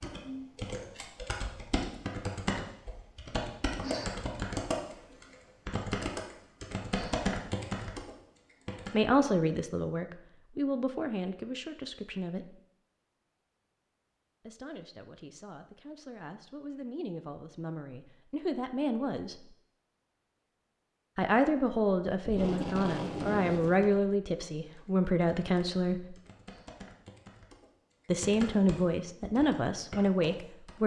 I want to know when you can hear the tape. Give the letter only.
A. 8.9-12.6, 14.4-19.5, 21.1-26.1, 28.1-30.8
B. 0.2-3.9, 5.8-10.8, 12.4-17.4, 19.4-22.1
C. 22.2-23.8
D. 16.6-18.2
C.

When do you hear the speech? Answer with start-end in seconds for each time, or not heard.
8.9-12.6, 14.4-19.5, 21.1-26.1, 28.1-30.8.